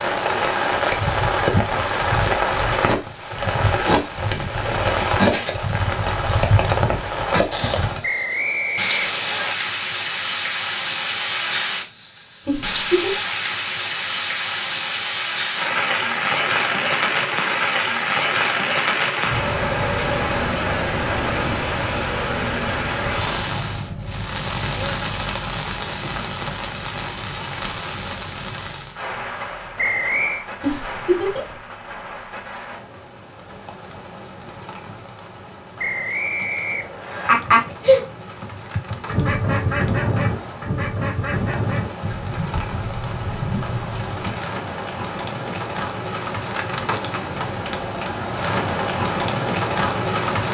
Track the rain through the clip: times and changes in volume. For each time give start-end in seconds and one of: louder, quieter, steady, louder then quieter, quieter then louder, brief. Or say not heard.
0.0-50.4 quieter then louder.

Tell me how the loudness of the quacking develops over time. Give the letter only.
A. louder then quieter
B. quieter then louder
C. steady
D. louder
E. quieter
E.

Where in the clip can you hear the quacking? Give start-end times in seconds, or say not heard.
37.2-44.3.